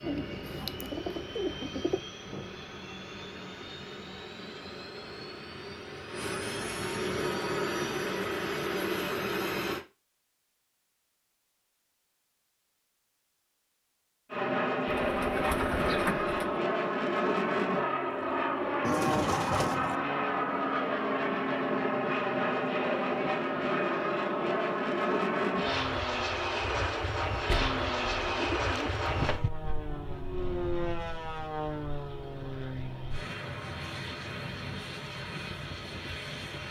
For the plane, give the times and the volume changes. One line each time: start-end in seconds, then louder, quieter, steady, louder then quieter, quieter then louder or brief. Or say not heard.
0.0-9.8 louder
14.3-36.6 quieter.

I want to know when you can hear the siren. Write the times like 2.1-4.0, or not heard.
not heard.